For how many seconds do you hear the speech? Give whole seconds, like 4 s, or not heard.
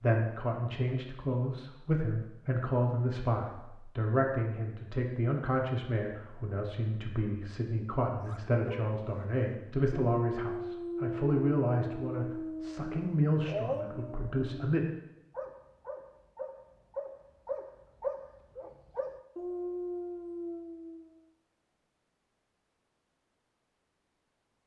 15 s.